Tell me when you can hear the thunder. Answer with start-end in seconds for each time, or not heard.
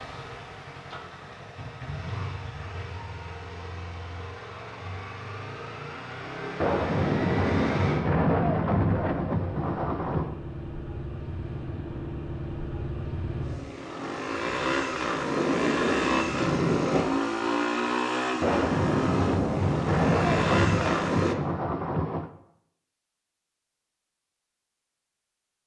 6.6-10.3, 18.4-22.3.